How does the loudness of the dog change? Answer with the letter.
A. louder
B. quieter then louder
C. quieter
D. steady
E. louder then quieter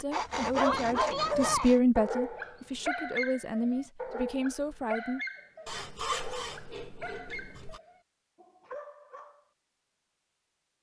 C.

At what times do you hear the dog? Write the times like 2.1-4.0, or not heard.
0.4-9.4.